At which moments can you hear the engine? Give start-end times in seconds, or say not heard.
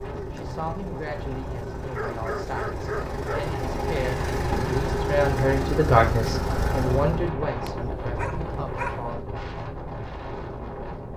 0.0-7.3.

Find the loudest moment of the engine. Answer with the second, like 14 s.
5 s.